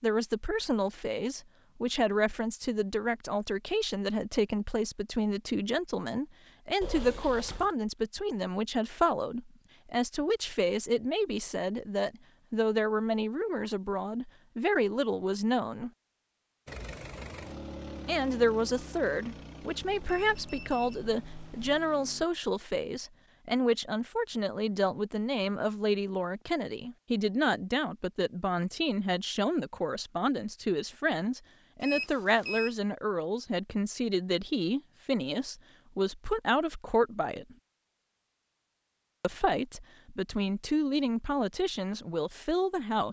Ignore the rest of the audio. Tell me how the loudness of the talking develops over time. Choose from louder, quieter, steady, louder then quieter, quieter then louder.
steady.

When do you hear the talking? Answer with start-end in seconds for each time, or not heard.
0.0-15.9, 18.1-37.5, 39.2-43.0.